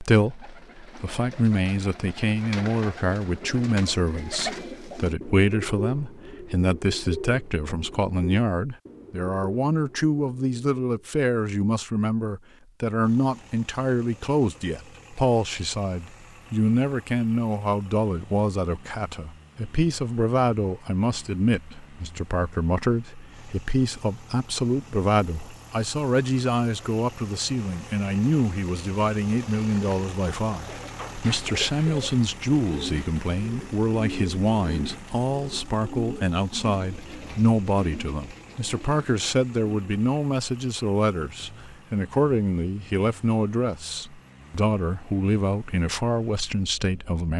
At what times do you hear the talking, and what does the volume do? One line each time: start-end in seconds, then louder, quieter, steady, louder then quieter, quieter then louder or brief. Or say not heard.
0.0-47.3 steady.